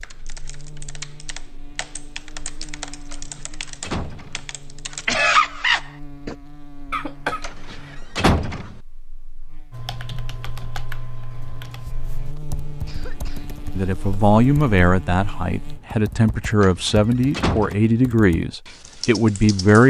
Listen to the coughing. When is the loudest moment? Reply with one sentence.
The volume of the coughing peaks at 7 seconds.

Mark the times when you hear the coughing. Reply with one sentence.
You can hear the coughing from 6.9 to 8.2 s and from 12.3 to 13.6 s.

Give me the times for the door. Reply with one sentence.
You can hear the door from 3.1 to 4.4 s, from 7.4 to 8.8 s and from 16.6 to 17.8 s.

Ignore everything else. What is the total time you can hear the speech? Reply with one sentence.
You can hear the speech for 6 seconds altogether.